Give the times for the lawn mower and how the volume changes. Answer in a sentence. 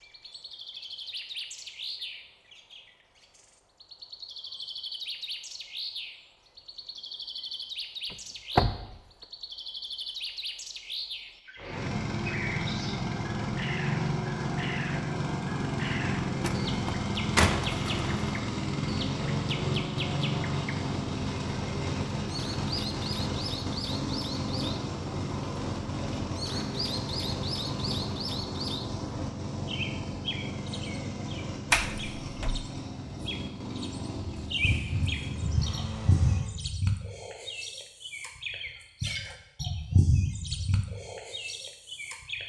You can hear the lawn mower from 11.6 to 36.5 s, getting quieter.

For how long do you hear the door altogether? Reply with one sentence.
The door can be heard for 3 seconds in total.